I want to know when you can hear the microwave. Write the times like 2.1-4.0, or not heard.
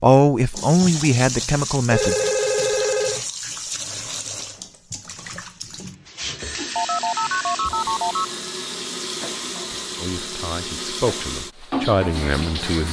not heard.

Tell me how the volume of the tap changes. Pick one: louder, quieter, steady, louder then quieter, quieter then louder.
steady.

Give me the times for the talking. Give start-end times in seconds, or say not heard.
0.0-2.2, 10.0-12.8.